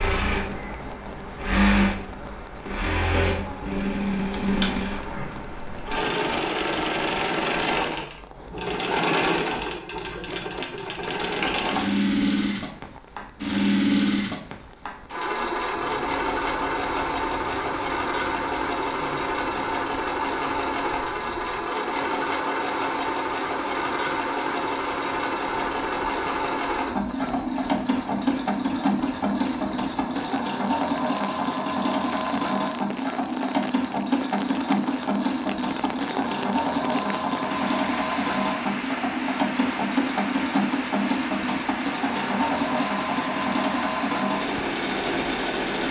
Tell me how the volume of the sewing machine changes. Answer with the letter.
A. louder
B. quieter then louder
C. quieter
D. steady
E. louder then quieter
D.